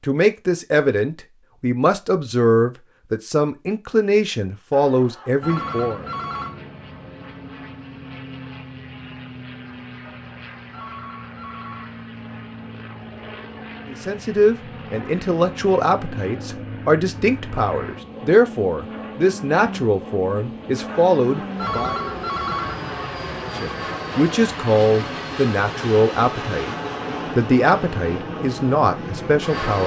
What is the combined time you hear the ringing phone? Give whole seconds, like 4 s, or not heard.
6 s.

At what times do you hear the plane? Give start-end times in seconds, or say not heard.
5.4-29.8.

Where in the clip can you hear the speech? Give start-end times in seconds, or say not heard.
0.0-6.0, 13.9-22.0, 23.4-26.8, 27.4-29.8.